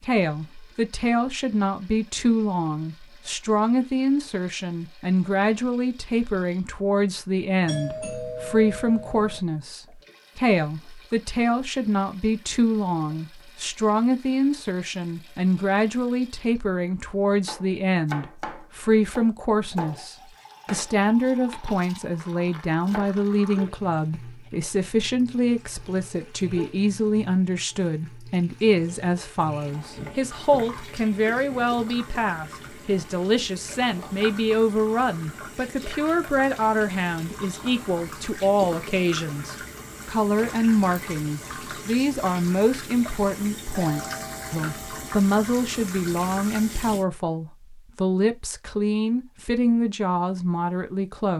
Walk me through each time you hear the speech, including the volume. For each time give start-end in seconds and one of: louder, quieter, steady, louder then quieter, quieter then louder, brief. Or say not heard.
0.0-51.3 steady.